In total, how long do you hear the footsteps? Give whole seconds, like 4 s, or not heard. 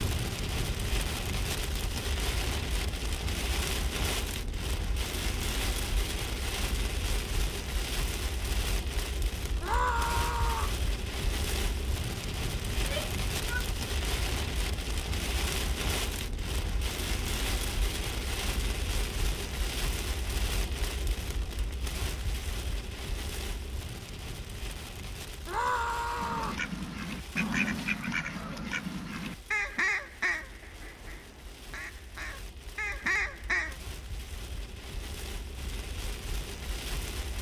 not heard.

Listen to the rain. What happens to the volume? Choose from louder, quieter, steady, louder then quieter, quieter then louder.
quieter.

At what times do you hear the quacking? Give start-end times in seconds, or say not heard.
26.1-33.8.